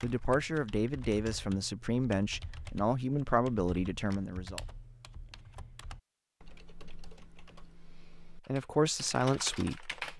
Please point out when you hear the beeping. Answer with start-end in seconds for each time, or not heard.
not heard.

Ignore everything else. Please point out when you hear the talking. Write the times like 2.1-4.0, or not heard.
0.0-4.6, 8.3-10.1.